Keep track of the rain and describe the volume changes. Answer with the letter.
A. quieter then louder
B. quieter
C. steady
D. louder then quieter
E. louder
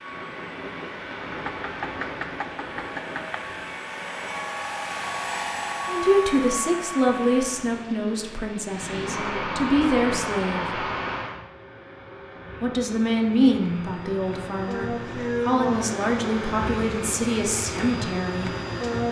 A.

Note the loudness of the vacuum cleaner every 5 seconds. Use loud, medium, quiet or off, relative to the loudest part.
medium, loud, medium, loud.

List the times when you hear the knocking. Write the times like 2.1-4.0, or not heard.
1.4-3.4.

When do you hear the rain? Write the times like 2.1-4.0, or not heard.
0.0-11.4.